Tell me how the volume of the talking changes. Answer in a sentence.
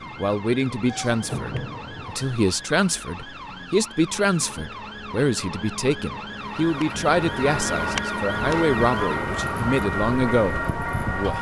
The loudness of the talking stays about the same.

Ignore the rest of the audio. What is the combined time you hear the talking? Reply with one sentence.
The talking can be heard for 11 seconds in total.